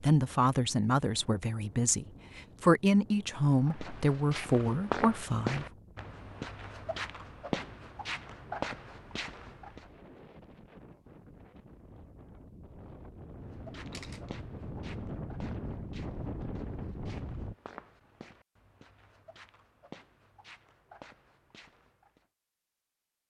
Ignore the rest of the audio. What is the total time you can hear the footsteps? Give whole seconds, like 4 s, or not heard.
15 s.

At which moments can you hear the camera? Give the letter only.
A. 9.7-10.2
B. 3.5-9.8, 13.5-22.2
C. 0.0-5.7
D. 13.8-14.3
D.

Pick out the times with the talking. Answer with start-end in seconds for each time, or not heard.
0.0-5.7.